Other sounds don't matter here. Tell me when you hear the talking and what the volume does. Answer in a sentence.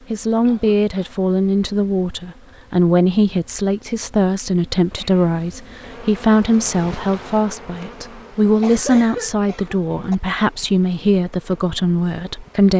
The talking can be heard from 0.1 to 12.7 s, at a steady volume.